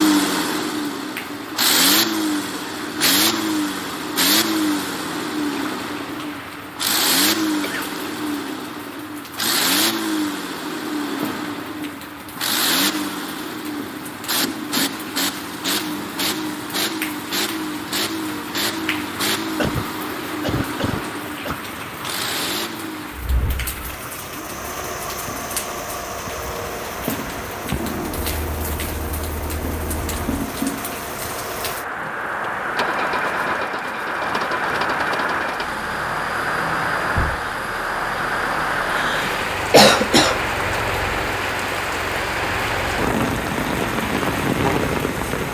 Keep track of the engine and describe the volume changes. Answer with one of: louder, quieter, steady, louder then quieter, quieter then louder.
quieter.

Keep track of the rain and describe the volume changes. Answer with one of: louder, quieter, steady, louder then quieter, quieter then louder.
louder.